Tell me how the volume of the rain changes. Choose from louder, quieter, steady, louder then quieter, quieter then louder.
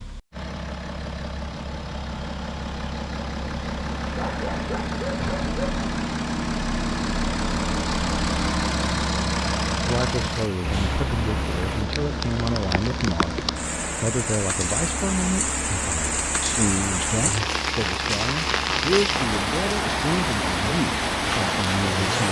louder.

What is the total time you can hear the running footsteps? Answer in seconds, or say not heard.
not heard.